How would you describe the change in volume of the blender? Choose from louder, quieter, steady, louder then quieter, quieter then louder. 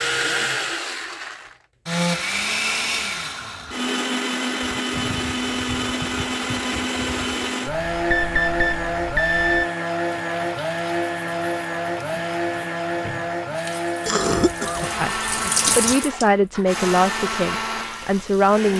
steady.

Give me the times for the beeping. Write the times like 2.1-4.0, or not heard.
7.7-9.7.